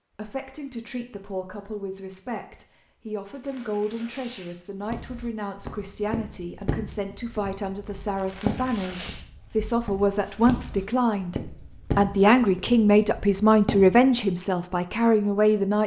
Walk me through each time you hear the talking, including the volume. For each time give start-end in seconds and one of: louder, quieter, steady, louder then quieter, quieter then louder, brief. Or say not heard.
0.1-15.8 louder.